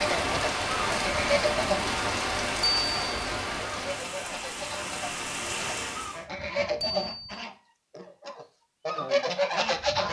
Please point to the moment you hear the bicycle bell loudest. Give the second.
3 s.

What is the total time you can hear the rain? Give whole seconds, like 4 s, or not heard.
6 s.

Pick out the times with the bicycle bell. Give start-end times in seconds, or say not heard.
2.6-3.1, 6.8-7.4.